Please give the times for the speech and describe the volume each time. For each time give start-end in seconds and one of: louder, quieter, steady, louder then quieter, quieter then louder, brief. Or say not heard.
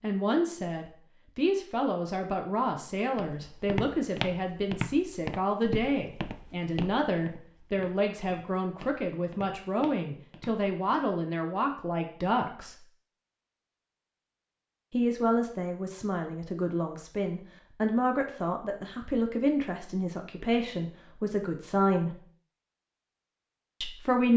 0.0-12.8 steady
14.9-22.2 steady
23.8-24.3 brief.